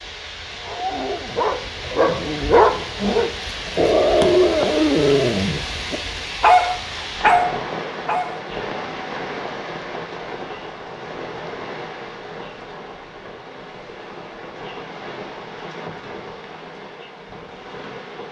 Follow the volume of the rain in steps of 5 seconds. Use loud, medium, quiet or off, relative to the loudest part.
loud, loud, medium, medium.